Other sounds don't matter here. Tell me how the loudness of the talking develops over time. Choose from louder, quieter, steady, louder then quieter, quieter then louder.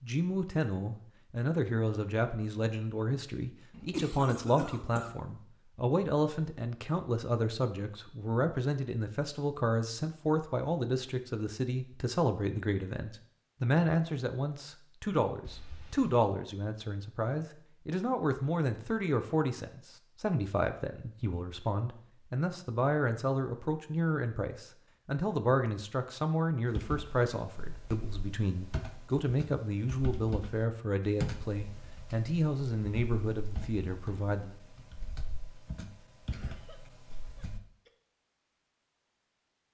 steady.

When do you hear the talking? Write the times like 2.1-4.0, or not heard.
0.0-34.5.